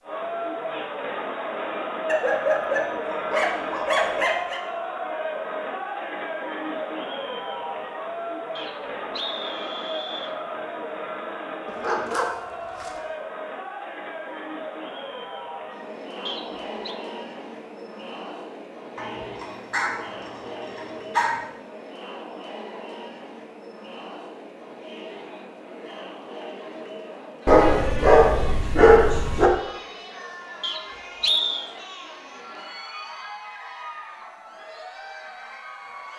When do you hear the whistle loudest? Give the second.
31 s.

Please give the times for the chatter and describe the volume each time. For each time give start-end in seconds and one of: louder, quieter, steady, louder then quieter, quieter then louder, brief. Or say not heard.
0.0-36.1 quieter.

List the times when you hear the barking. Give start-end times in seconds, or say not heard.
2.0-4.6, 11.7-12.9, 18.9-21.4, 27.4-29.5.